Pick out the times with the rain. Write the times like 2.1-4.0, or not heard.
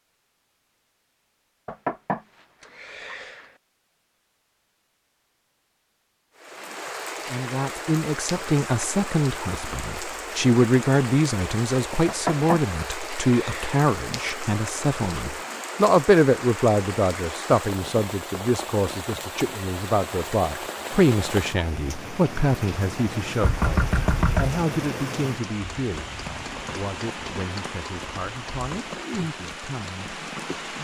6.3-30.7.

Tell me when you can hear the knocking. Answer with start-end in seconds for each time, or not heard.
1.6-3.5, 12.1-13.8, 23.4-24.6.